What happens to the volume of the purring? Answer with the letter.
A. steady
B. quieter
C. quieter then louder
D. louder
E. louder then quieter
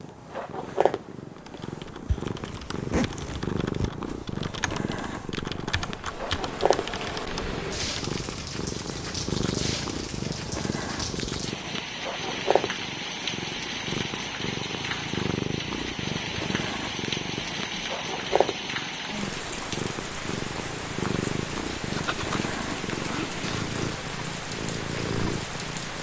A.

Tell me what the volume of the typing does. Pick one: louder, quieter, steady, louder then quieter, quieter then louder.
louder.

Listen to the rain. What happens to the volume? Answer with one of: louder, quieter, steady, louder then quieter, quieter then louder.
steady.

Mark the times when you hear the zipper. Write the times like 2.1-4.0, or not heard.
2.0-3.9, 21.9-23.9.